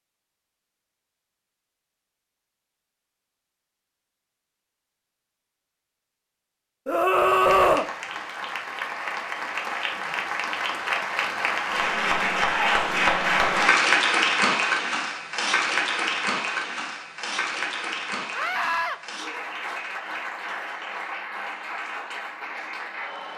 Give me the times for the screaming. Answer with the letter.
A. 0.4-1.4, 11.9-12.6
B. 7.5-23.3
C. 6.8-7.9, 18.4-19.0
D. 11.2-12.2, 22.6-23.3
C.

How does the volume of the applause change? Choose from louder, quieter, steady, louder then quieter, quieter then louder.
louder then quieter.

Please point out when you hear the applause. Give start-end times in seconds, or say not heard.
7.5-23.3.